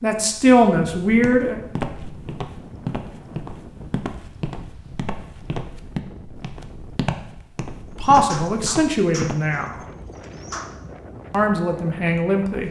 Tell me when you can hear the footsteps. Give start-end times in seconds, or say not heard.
1.1-9.4.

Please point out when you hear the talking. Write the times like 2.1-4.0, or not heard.
0.0-1.6, 8.0-9.7, 11.3-12.6.